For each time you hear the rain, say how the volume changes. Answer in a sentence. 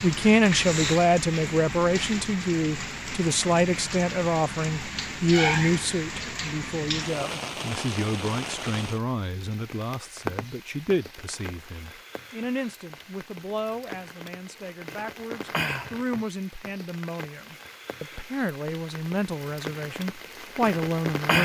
You can hear the rain from 0.0 to 21.4 s, getting quieter.